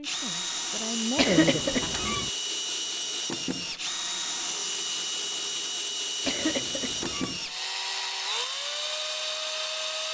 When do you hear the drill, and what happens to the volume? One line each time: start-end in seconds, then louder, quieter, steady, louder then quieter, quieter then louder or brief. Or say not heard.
0.0-10.1 steady.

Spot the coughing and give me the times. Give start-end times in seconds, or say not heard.
1.1-2.3, 6.2-7.4.